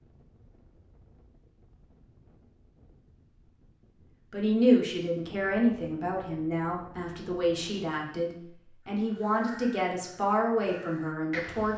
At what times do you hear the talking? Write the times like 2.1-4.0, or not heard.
4.3-11.7.